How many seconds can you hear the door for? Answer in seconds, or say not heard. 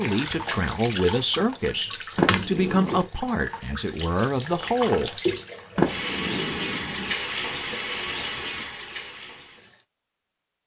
2 s.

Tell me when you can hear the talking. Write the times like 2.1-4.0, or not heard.
0.0-5.2.